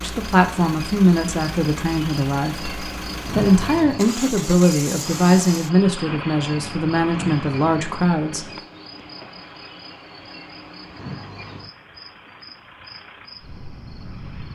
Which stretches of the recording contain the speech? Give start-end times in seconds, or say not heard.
0.0-8.4.